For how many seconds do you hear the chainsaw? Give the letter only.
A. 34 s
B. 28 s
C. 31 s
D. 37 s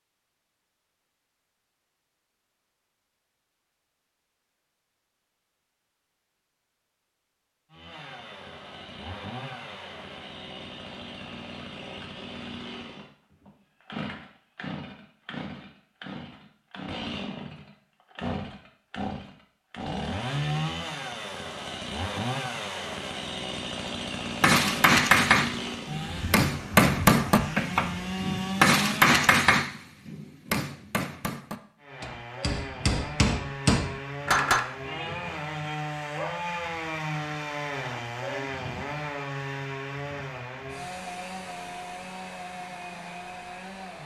A.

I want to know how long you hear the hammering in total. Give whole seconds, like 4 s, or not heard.
10 s.